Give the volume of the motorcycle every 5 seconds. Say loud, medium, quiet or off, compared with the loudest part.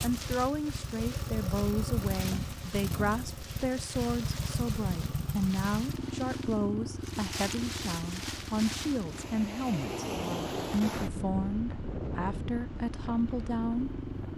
loud, loud, medium.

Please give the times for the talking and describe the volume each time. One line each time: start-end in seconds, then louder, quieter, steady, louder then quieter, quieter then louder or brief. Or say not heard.
0.0-13.9 steady.